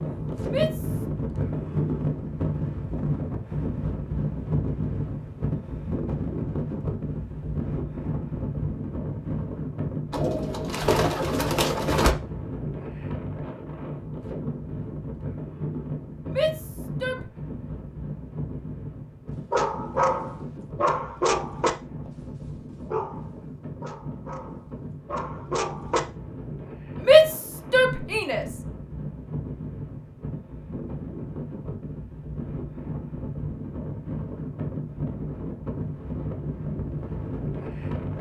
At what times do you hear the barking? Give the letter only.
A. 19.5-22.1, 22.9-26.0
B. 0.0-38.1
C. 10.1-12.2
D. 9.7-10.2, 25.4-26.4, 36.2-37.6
A.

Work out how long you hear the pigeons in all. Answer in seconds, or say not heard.
2 s.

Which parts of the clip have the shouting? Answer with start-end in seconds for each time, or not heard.
0.5-1.1, 16.2-17.2, 27.1-28.4.